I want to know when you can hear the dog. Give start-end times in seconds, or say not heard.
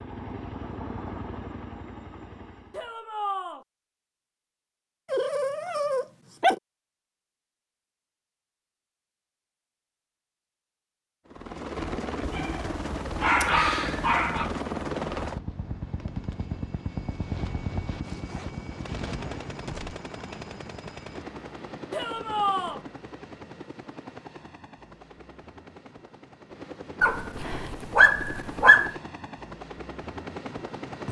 5.1-6.6, 12.2-14.5, 27.0-28.9.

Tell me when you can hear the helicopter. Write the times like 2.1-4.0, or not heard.
0.0-2.9, 11.2-31.0.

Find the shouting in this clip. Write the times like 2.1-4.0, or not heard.
2.7-3.6, 21.9-22.8.